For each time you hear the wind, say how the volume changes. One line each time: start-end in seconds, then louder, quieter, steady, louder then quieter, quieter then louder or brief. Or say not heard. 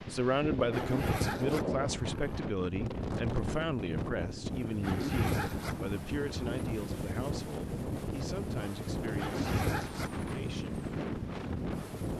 0.0-12.1 steady.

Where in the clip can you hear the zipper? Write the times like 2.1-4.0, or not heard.
0.7-2.4, 4.8-6.5, 9.2-10.2.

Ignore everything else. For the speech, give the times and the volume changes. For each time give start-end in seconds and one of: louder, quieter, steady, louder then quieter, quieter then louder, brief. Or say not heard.
0.1-10.8 quieter.